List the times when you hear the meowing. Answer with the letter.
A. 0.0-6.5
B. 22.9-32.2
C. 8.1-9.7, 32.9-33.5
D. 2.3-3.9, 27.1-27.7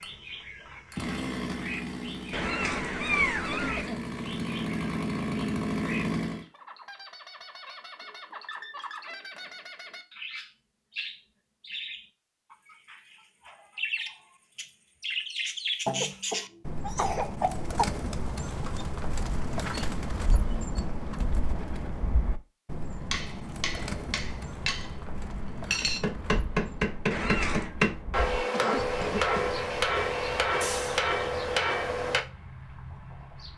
D.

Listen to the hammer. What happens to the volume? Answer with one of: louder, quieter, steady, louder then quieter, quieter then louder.
louder.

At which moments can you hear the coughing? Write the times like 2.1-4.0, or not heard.
3.5-4.0, 15.8-17.9, 28.5-29.5.